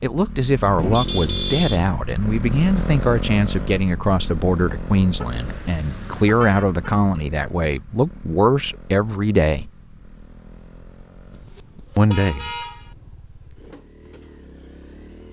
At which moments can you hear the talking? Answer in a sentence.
The talking can be heard from 0.0 to 9.7 s and from 11.9 to 12.5 s.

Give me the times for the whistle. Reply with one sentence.
The whistle can't be heard in this clip.